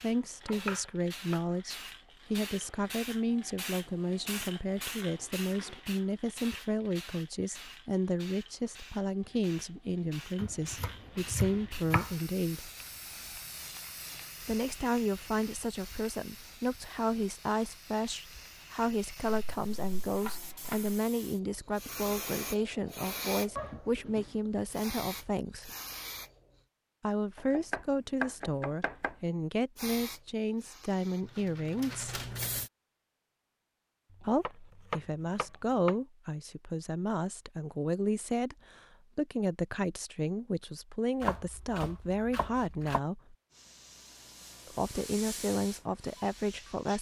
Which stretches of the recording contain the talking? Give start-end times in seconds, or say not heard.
0.0-12.7, 14.4-25.8, 27.0-32.2, 34.2-43.4, 44.6-46.9.